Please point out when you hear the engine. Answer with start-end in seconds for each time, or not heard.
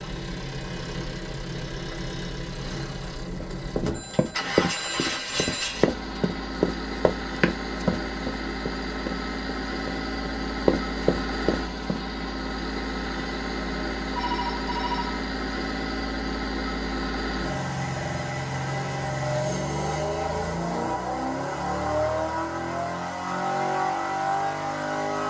0.0-25.2.